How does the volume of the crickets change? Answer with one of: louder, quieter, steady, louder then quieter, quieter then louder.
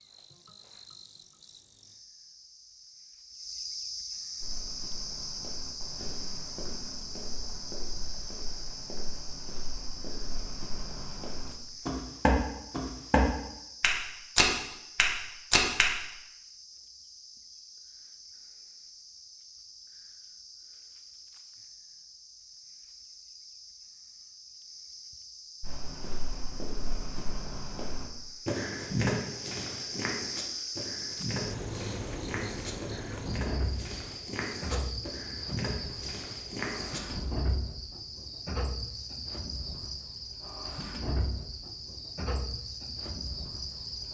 quieter then louder.